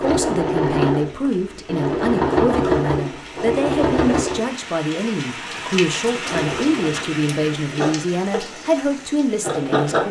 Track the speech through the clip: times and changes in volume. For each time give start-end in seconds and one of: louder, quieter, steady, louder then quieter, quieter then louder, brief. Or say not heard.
0.0-10.0 steady.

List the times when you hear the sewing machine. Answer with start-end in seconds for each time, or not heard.
0.0-4.5, 6.2-10.0.